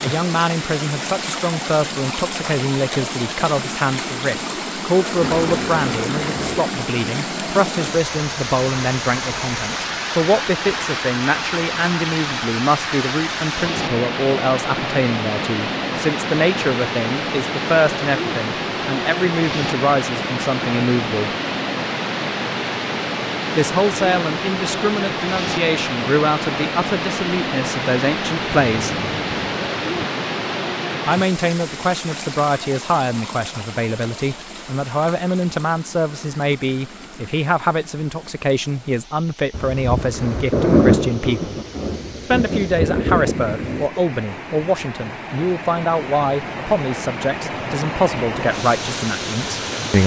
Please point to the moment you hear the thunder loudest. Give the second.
41 s.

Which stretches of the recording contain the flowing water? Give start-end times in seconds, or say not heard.
0.0-50.0.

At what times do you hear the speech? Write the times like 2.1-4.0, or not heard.
0.0-21.3, 23.6-28.9, 31.1-41.5, 42.2-50.0.